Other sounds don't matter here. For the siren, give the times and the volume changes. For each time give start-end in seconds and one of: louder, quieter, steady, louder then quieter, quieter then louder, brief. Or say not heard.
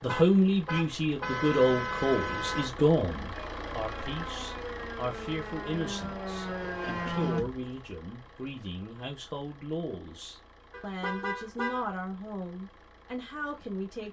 3.3-7.5 louder.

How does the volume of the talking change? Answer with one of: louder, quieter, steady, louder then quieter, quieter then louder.
quieter.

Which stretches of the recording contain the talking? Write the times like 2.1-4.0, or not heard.
0.0-14.0.